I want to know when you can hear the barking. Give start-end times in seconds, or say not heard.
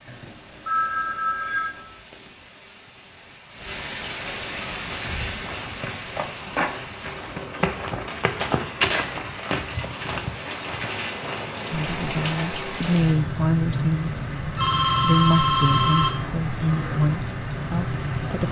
not heard.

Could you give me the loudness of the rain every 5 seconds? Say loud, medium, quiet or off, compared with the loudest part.
medium, medium, loud, loud.